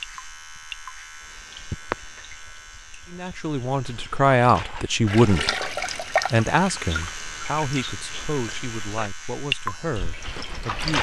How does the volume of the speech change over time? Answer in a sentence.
The loudness of the speech goes down.